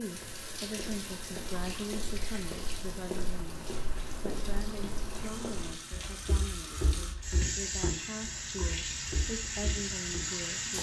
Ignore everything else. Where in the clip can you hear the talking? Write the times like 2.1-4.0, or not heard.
0.0-10.7.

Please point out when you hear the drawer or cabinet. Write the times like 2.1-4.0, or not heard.
not heard.